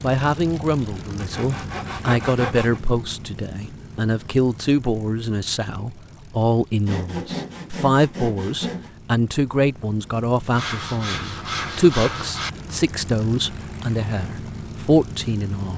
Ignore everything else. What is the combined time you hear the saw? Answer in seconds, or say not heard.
6 s.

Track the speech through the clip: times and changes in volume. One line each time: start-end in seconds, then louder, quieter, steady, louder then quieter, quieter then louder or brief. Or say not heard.
0.0-15.7 steady.